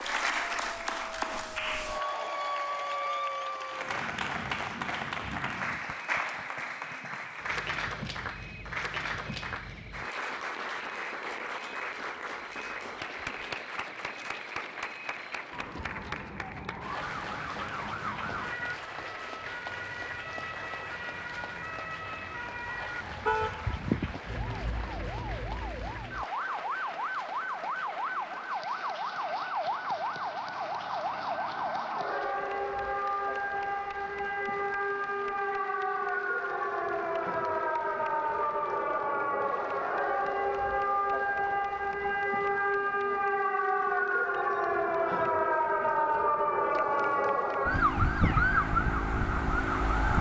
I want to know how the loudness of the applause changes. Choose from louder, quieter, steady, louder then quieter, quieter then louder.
quieter.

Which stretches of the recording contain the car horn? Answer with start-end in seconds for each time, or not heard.
23.2-23.9.